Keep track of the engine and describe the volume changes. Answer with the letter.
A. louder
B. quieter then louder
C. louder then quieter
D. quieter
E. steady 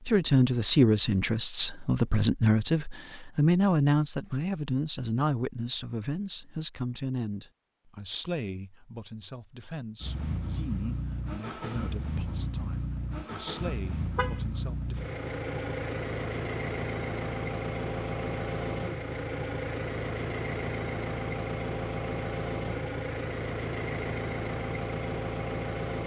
E.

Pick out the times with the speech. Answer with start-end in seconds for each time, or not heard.
0.1-15.1.